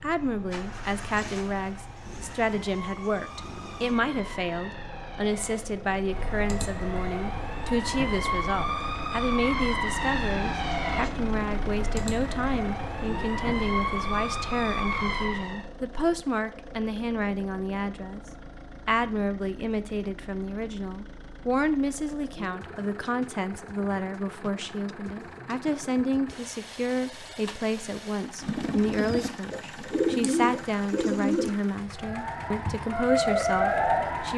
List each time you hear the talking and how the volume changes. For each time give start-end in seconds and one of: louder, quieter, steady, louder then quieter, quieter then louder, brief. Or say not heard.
0.0-18.2 steady
18.9-34.3 steady.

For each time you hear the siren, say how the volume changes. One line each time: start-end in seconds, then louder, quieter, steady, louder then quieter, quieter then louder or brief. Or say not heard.
0.0-15.7 louder
31.9-34.3 brief.